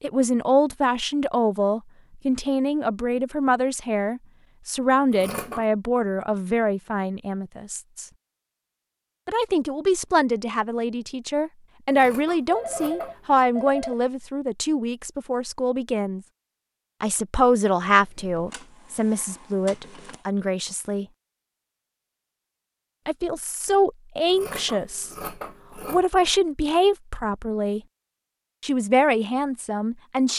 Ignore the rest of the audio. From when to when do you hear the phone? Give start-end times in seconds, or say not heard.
12.4-13.9.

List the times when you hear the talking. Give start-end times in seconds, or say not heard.
0.0-8.1, 9.2-16.2, 17.0-21.1, 23.1-27.8, 28.6-30.3.